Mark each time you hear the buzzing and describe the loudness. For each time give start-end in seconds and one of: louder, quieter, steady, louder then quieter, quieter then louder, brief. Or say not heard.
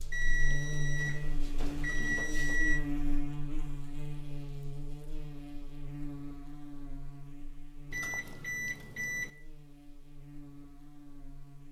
0.0-11.6 quieter.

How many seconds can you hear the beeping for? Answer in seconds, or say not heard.
4 s.